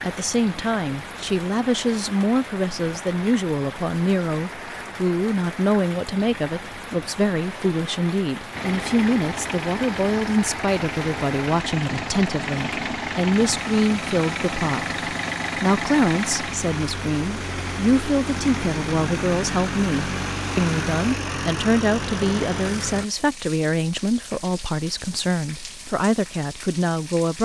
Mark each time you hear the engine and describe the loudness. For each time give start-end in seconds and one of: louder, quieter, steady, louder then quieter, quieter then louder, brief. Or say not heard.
8.5-23.1 steady.